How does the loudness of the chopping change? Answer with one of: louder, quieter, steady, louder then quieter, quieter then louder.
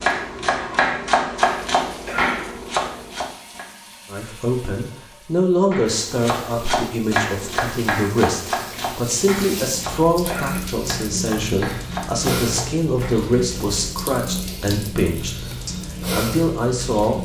quieter.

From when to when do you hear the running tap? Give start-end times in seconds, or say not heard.
0.1-17.2.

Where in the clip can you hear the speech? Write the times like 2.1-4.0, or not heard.
4.1-17.2.